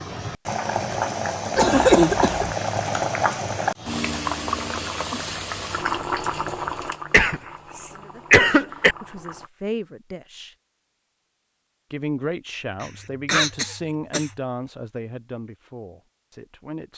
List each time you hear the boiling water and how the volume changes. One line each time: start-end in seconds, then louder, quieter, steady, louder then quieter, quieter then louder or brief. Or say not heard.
0.0-9.5 quieter.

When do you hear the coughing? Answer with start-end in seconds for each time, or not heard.
1.6-2.5, 7.1-8.9, 12.8-14.3.